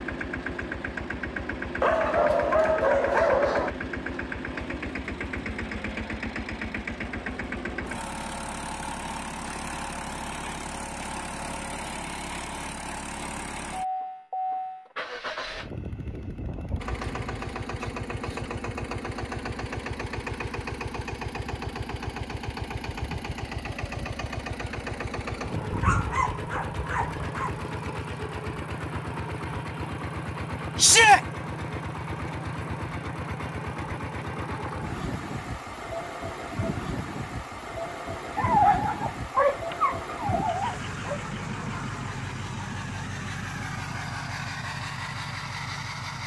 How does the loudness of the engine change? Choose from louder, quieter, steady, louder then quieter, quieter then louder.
steady.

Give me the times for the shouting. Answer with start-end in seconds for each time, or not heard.
30.8-31.2.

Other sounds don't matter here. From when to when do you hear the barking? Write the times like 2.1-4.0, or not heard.
1.8-3.8, 25.7-27.6, 38.4-41.2.